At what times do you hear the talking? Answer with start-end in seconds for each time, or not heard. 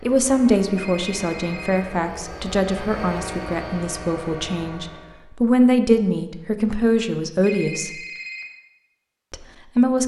0.0-8.0, 9.3-10.0.